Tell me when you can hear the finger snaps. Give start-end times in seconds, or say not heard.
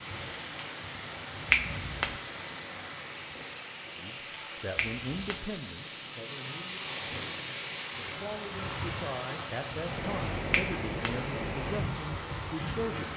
1.5-2.2, 4.8-5.5, 10.5-11.2.